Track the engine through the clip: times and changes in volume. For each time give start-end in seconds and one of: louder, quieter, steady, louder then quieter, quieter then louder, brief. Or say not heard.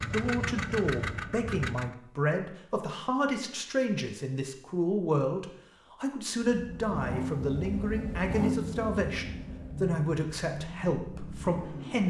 0.0-1.9 brief
6.4-12.0 quieter.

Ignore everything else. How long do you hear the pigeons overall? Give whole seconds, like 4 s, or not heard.
not heard.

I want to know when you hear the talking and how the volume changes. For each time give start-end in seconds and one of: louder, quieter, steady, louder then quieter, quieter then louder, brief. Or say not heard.
0.1-12.0 steady.